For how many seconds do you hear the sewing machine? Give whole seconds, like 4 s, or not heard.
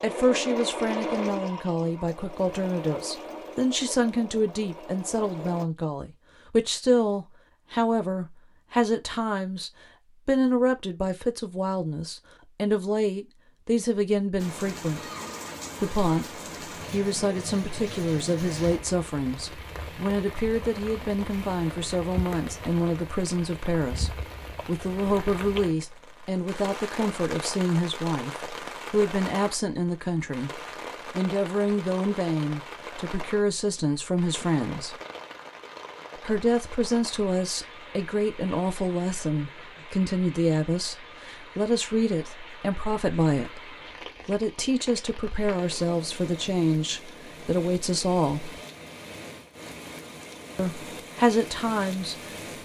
6 s.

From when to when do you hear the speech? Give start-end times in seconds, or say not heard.
0.0-15.0, 15.8-35.0, 36.1-48.6, 50.5-52.4.